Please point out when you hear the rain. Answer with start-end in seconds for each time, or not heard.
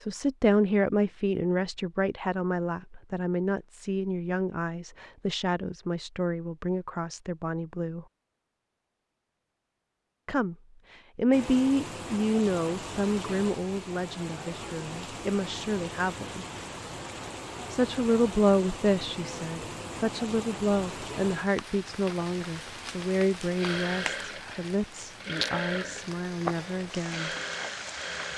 11.3-28.3.